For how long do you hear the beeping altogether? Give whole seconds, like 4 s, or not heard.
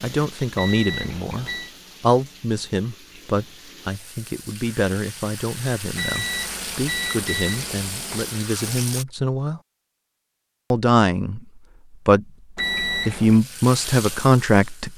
4 s.